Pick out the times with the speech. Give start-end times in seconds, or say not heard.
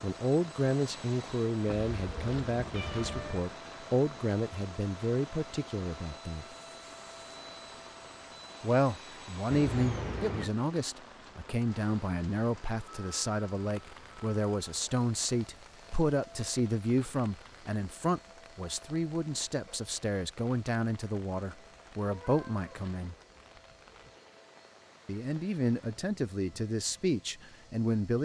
0.0-6.5, 8.6-23.1, 25.1-28.2.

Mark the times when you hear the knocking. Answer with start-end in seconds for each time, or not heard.
not heard.